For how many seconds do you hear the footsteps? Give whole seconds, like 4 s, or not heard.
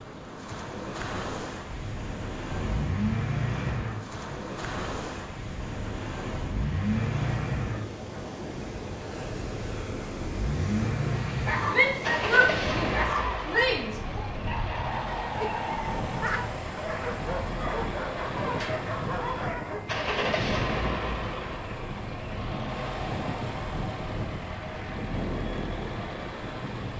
not heard.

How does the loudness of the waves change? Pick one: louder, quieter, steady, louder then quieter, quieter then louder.
steady.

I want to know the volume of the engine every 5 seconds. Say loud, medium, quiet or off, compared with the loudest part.
loud, loud, loud, medium, loud, medium.